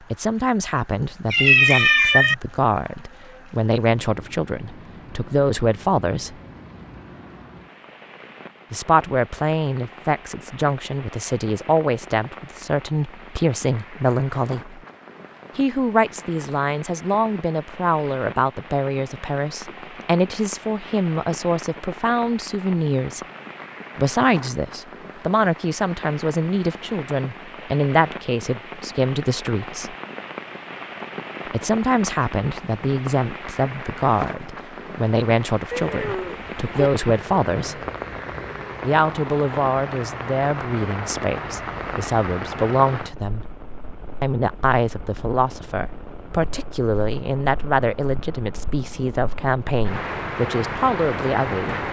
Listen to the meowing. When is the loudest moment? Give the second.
2 s.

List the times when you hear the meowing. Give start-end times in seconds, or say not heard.
1.3-2.4, 35.7-36.9.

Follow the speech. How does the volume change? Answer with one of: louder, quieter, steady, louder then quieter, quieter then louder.
steady.